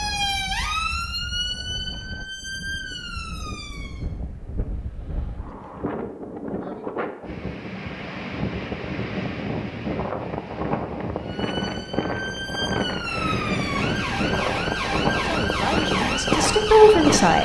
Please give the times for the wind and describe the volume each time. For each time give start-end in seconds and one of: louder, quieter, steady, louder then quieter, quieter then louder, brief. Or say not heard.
0.0-17.4 louder.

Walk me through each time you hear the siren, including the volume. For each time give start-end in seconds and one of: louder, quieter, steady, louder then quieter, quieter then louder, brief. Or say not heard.
0.0-4.0 quieter
11.2-17.4 louder.